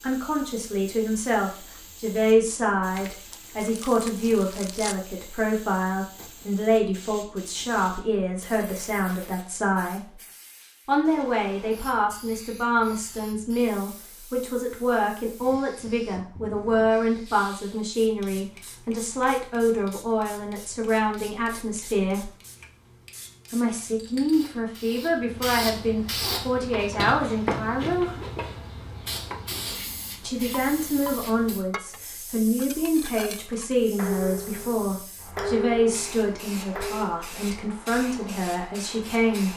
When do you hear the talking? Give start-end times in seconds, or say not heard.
0.0-10.2, 10.8-22.3, 23.5-28.1, 30.2-39.5.